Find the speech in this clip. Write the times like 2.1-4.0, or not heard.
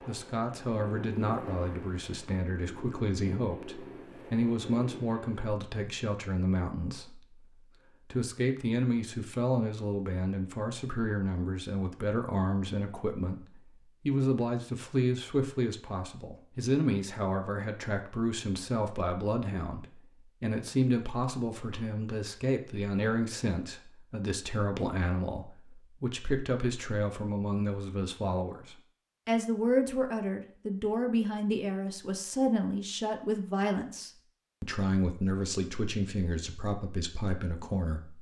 0.0-38.1.